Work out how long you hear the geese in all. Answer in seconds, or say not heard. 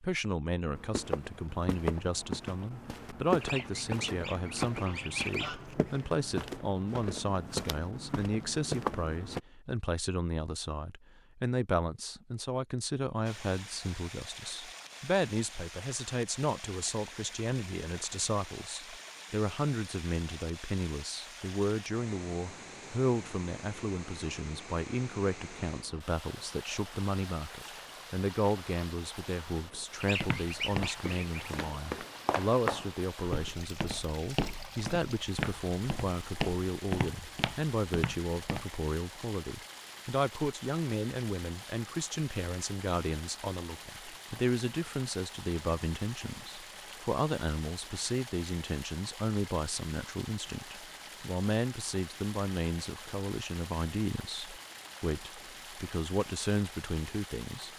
4 s.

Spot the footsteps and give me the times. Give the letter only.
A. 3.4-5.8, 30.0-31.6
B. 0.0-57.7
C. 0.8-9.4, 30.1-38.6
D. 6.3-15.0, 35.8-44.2
C.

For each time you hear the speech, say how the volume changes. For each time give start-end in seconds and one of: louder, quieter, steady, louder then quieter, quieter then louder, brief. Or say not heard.
0.0-57.7 steady.